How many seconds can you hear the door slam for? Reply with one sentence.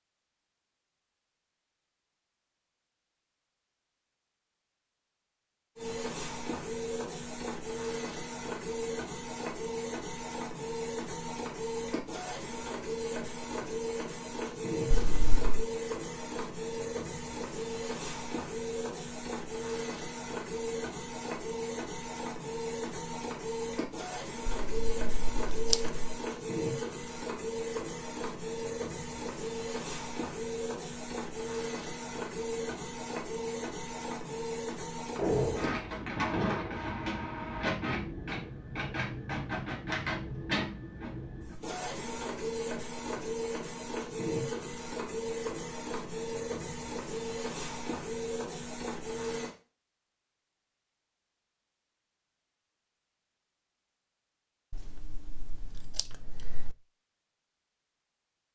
The door slam can be heard for 2 seconds in total.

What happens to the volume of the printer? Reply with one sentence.
The volume of the printer stays about the same.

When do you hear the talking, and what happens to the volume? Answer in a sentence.
The talking can't be heard in this clip.